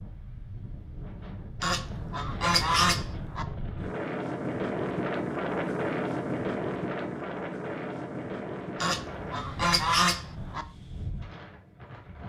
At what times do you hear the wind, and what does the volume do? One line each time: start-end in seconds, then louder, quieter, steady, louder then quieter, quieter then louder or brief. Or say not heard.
0.0-12.2 louder then quieter.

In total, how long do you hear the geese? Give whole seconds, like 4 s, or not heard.
4 s.